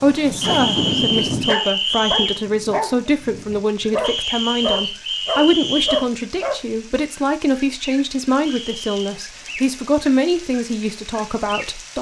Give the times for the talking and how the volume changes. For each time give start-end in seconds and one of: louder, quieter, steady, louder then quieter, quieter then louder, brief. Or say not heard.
0.0-11.9 steady.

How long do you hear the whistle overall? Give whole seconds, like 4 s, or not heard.
5 s.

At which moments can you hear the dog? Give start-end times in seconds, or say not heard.
0.0-6.6.